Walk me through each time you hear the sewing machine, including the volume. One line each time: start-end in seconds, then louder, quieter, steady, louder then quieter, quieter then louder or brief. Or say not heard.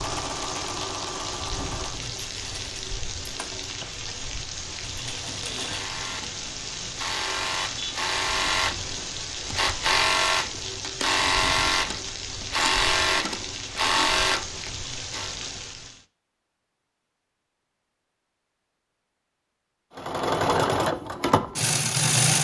0.0-15.3 louder
19.9-22.3 brief.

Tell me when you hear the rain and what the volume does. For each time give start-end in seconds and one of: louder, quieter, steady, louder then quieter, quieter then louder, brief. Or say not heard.
0.0-16.1 steady.